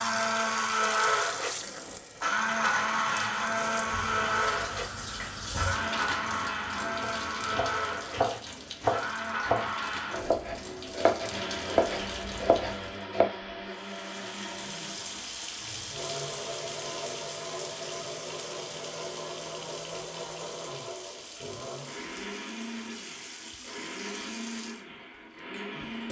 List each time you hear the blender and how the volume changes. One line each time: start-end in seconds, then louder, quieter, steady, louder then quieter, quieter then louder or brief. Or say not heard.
0.0-26.0 quieter.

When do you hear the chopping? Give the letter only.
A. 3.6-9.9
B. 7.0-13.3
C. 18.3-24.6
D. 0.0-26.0
B.